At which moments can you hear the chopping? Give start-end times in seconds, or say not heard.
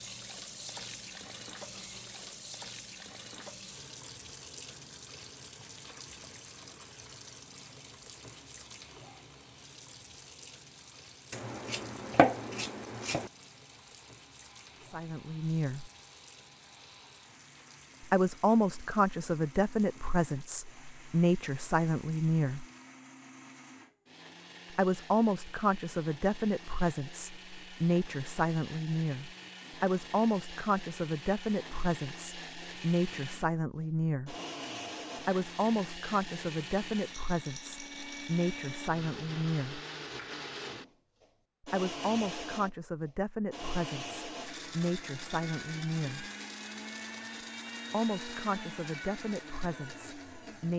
11.3-13.3.